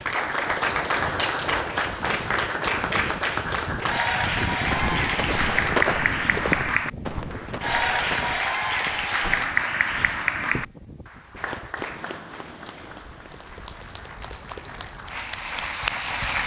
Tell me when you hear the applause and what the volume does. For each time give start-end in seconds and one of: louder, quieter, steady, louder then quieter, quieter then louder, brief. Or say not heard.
0.0-16.4 quieter.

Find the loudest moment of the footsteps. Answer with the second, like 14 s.
6 s.